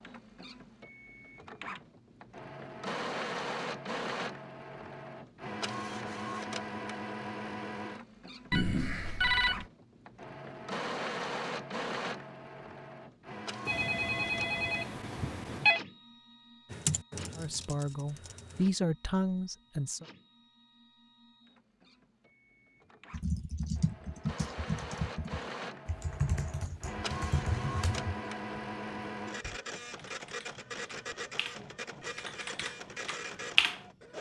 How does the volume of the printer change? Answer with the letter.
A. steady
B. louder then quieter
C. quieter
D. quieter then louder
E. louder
D.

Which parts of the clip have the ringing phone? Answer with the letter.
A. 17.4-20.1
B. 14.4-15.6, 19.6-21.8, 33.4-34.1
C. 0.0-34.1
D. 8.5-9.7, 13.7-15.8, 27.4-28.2
D.